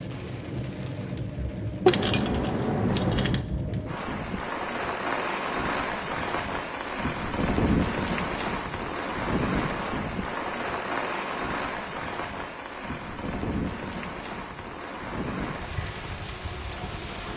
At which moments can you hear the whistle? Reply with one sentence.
You can't hear the whistle here.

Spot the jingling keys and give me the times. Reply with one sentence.
You can hear the jingling keys from 1.9 to 3.5 s.